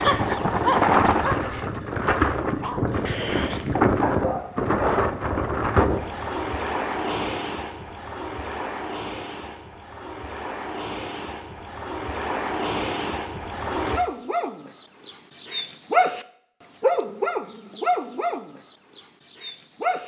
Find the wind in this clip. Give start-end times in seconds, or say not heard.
0.0-14.1.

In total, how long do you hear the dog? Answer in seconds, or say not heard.
11 s.